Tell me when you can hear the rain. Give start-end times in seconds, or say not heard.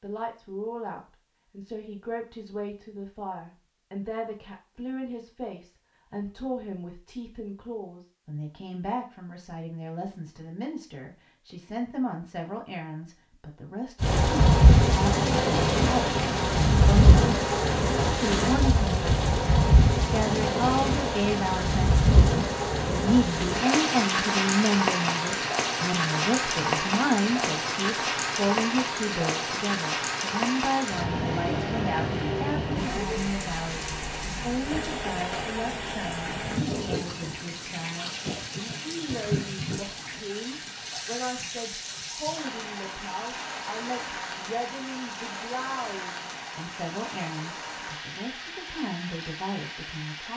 14.0-50.3.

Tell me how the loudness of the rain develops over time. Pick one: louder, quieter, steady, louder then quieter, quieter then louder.
quieter.